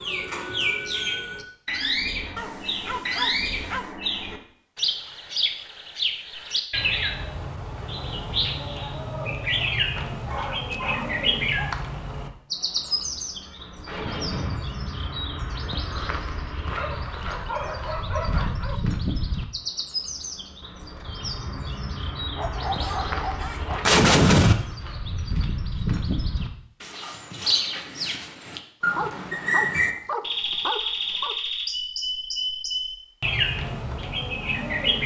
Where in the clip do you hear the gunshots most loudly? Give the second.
24 s.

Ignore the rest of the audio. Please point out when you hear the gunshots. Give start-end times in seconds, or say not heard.
12.6-14.6, 22.6-24.6.